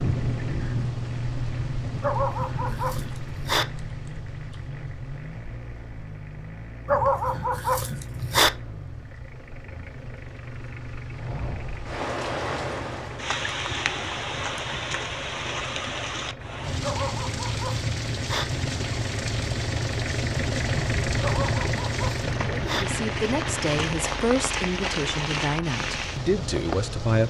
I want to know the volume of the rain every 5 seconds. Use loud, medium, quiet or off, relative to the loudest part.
loud, quiet, loud, loud, loud, loud.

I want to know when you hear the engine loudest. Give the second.
21 s.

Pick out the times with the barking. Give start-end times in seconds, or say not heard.
2.0-3.6, 6.8-8.5, 16.8-18.4, 21.2-22.9.